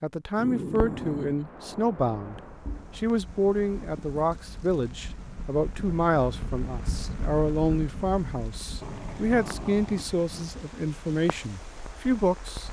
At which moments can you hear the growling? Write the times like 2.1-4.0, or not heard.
0.3-1.4, 8.8-10.6.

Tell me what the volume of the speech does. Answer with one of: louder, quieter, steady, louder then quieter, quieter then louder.
steady.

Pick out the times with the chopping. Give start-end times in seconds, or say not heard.
not heard.